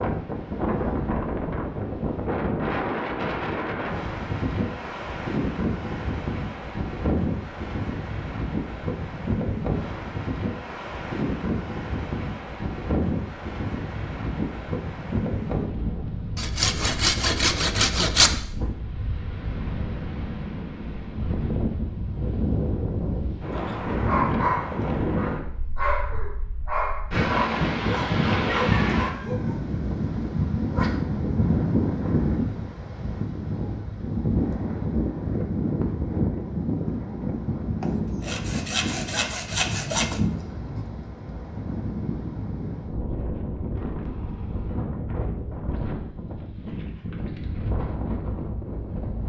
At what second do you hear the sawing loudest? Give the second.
18 s.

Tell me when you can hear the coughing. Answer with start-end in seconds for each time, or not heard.
not heard.